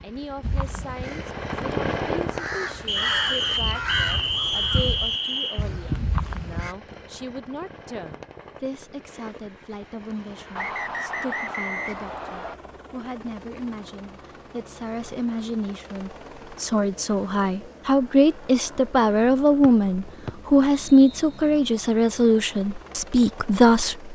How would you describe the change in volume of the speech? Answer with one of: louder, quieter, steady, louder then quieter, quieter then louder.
louder.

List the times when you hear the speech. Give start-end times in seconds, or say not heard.
0.0-24.1.